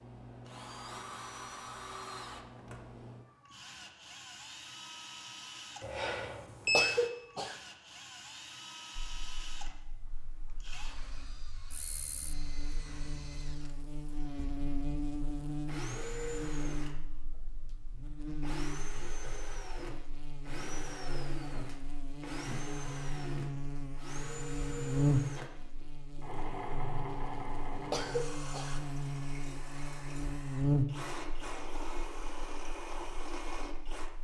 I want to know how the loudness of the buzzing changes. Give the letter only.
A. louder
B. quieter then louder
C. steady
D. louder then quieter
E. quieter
A.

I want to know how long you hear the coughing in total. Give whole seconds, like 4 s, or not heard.
2 s.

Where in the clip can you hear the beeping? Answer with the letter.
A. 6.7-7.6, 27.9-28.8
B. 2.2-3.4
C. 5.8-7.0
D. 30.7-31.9
C.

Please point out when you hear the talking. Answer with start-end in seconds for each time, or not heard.
not heard.